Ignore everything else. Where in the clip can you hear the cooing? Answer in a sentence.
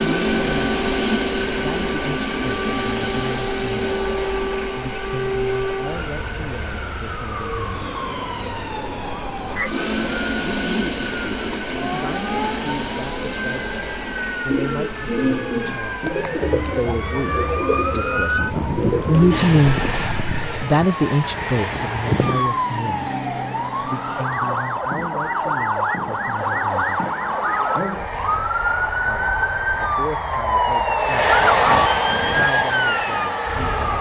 The cooing can be heard from 14.4 to 20.6 s.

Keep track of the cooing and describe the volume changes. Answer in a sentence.
The loudness of the cooing stays about the same.